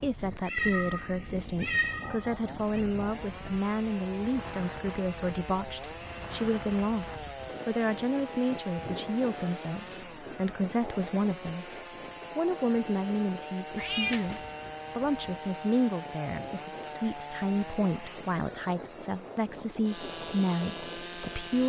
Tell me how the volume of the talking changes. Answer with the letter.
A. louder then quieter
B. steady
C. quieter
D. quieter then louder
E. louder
B.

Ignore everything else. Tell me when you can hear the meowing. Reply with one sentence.
The meowing can be heard from 0.5 to 2.9 s and from 13.8 to 14.6 s.